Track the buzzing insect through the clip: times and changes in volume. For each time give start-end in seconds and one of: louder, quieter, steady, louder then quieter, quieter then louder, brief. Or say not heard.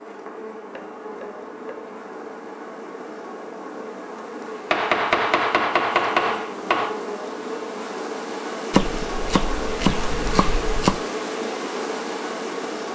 0.0-12.9 louder.